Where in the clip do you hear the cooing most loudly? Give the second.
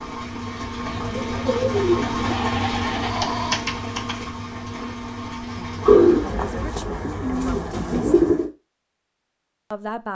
6 s.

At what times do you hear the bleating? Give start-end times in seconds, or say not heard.
2.2-4.2.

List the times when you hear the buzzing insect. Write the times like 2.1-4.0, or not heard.
not heard.